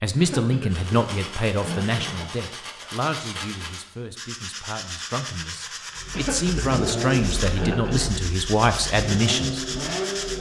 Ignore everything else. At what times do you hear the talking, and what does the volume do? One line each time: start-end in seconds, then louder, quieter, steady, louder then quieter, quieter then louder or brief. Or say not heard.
0.0-9.7 quieter then louder.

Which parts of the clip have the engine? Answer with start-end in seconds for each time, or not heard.
5.9-10.3.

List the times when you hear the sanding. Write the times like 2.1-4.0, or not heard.
0.7-10.3.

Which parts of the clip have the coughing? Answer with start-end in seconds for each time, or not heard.
0.1-2.3, 6.1-8.5.